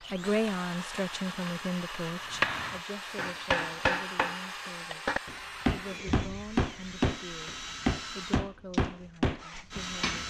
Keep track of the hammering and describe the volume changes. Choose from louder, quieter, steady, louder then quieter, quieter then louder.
louder.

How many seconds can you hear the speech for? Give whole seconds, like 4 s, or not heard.
10 s.